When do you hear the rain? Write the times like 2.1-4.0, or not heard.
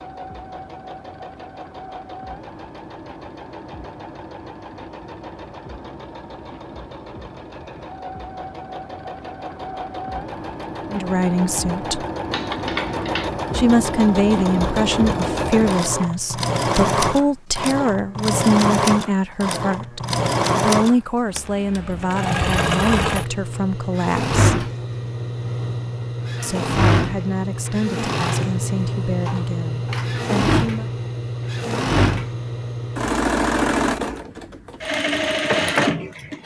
not heard.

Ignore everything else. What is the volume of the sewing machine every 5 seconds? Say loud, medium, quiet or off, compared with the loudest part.
quiet, quiet, medium, loud, loud, loud, loud, loud.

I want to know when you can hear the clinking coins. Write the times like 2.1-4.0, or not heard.
12.3-13.3.